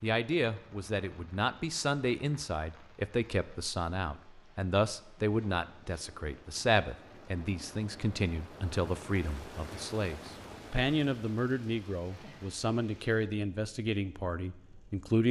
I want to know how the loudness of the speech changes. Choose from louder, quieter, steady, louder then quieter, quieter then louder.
steady.